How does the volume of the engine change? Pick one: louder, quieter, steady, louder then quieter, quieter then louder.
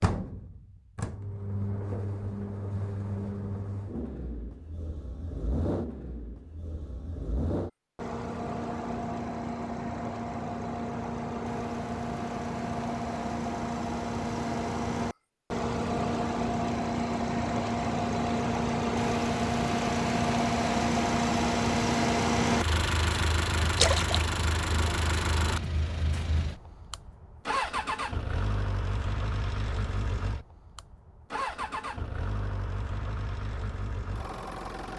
louder then quieter.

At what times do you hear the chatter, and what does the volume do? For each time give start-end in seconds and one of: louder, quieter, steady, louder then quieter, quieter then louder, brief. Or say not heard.
not heard.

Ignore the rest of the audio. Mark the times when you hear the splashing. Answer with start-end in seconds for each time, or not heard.
23.8-24.2.